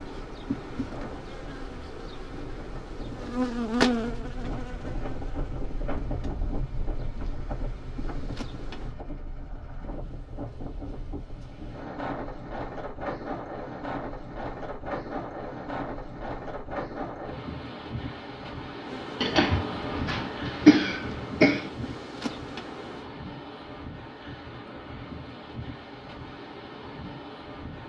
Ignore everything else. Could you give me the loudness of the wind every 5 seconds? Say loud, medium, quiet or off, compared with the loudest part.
medium, loud, loud, loud, loud, medium.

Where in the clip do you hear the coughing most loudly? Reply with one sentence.
The volume of the coughing peaks at 21 seconds.